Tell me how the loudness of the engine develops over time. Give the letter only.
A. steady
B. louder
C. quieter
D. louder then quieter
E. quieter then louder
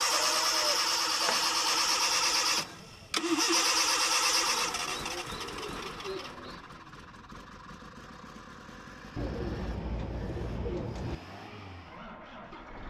C.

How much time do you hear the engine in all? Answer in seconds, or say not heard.
13 s.